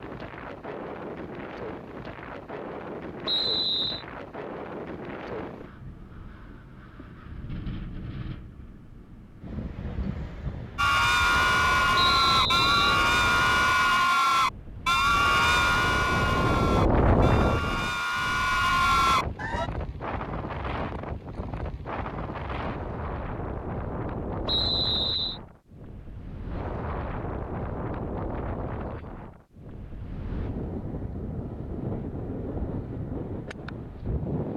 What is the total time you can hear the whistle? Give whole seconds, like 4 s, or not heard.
3 s.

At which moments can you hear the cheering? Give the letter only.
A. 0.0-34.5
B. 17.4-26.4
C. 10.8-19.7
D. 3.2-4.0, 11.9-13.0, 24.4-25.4
C.